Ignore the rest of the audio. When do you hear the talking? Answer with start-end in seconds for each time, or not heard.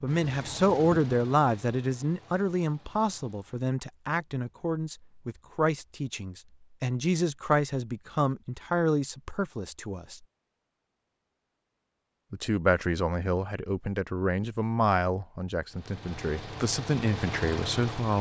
0.0-10.2, 12.3-18.1.